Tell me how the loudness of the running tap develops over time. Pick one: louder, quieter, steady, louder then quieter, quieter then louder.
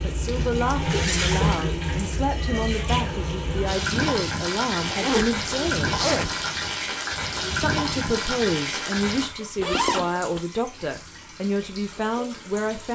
quieter.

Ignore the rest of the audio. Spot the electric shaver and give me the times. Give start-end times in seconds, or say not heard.
not heard.